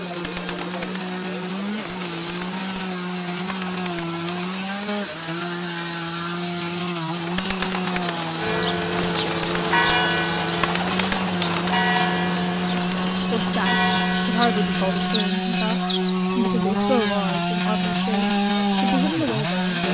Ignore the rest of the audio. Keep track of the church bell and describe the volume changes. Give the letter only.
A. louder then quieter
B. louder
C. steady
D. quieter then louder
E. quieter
D.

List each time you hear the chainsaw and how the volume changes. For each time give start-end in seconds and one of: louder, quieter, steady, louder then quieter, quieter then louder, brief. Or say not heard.
0.0-19.8 louder.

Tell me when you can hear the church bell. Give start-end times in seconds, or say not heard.
8.3-15.1.